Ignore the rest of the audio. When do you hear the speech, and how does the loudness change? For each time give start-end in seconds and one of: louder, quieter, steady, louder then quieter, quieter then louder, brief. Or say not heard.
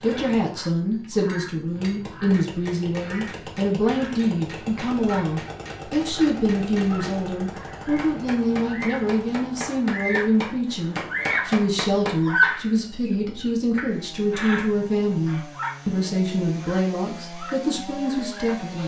0.0-18.8 steady.